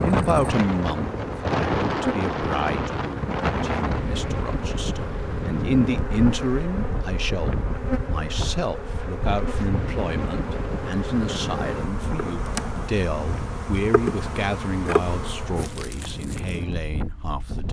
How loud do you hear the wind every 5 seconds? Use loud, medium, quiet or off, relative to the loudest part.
loud, medium, medium, medium.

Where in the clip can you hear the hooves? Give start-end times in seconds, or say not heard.
not heard.